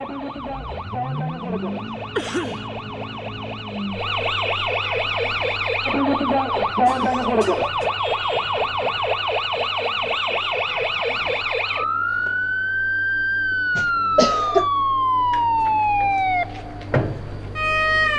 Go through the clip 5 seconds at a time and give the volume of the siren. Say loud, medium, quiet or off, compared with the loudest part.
medium, loud, loud, loud.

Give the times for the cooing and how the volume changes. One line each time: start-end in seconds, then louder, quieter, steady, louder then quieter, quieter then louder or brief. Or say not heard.
not heard.